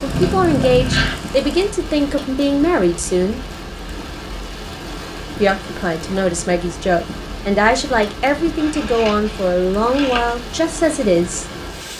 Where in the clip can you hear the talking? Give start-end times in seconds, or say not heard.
0.0-3.4, 5.3-11.4.